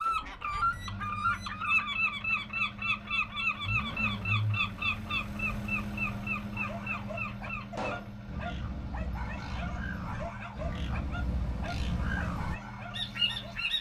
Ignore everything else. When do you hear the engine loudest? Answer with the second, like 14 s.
4 s.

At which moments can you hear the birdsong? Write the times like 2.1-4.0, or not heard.
0.0-13.7.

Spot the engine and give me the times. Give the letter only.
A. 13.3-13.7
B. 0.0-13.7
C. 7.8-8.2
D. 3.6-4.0
B.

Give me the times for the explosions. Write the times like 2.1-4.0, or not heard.
7.8-8.2.